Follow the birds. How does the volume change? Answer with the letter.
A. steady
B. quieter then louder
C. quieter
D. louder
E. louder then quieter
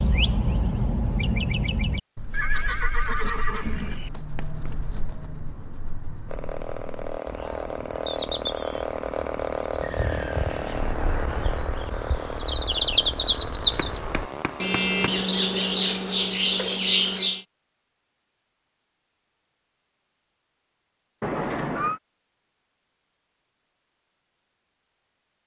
B.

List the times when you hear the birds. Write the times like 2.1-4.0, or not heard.
0.0-17.4.